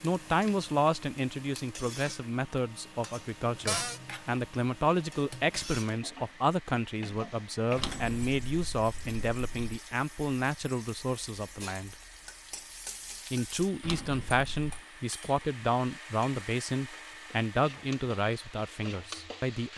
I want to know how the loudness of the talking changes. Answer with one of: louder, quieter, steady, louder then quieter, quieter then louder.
steady.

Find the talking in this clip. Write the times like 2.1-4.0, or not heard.
0.0-11.9, 13.3-19.7.